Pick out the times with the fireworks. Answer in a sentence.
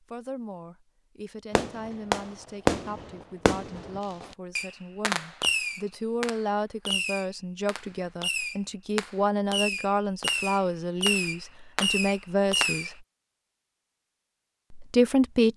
The fireworks can be heard from 1.6 to 12.9 s.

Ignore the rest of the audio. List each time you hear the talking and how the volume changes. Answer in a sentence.
You can hear the talking from 0.0 to 12.9 s, getting louder; and briefly from 14.7 to 15.5 s.